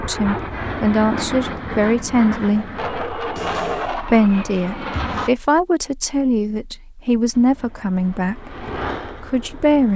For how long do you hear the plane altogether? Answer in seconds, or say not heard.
8 s.